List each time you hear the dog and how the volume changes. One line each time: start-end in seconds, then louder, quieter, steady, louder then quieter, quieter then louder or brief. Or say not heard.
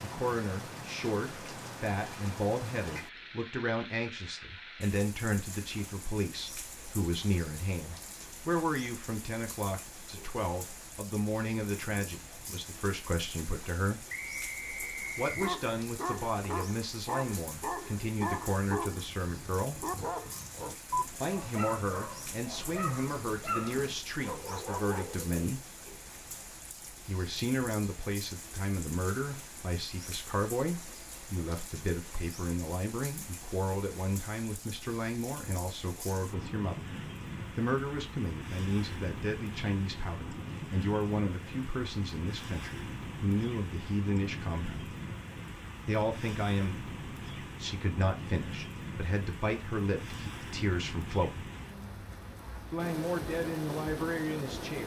15.2-25.4 steady.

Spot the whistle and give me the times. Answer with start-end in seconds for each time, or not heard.
14.1-15.6.